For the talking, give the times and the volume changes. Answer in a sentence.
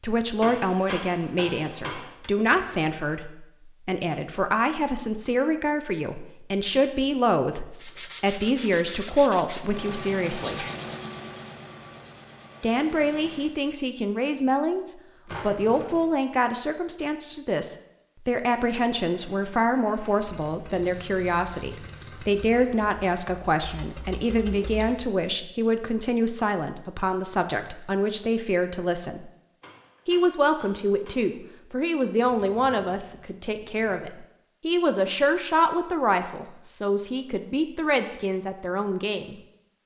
The talking can be heard from 0.0 to 10.7 s, at a steady volume; from 12.6 to 29.3 s, at a steady volume; and from 30.1 to 39.4 s, at a steady volume.